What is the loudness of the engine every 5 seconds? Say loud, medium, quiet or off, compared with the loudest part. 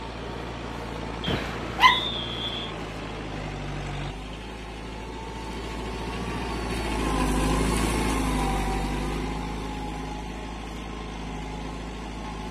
medium, loud, medium.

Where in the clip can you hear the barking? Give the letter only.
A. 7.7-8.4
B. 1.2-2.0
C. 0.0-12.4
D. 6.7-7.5
B.